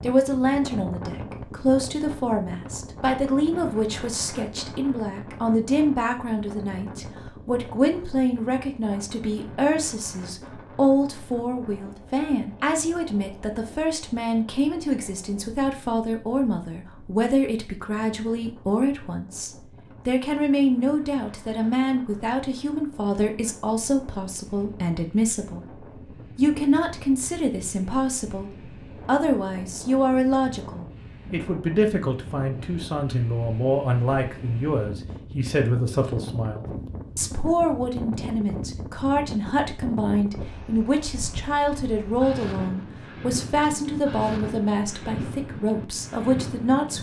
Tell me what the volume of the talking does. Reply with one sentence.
The volume of the talking stays about the same.